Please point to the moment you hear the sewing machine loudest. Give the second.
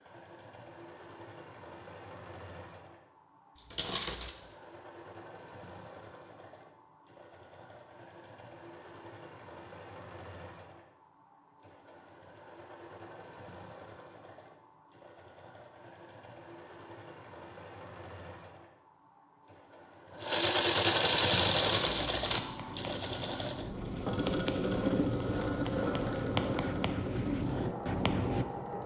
21 s.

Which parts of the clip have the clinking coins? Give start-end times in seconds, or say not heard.
3.5-4.3, 21.6-22.4.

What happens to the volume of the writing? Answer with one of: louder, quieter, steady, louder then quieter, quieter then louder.
louder.